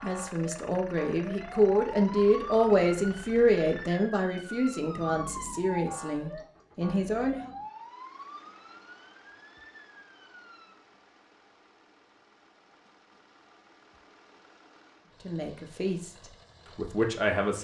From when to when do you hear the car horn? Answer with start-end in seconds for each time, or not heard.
not heard.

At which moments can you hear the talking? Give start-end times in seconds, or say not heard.
0.0-7.5, 15.2-16.1, 16.8-17.6.